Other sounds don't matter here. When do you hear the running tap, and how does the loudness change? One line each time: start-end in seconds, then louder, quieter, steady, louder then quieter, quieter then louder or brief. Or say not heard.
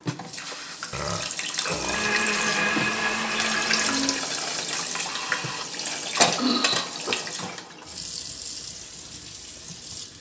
0.0-10.1 louder then quieter.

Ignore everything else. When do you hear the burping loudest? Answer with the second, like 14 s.
7 s.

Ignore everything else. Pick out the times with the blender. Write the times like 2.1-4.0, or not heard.
1.8-4.3.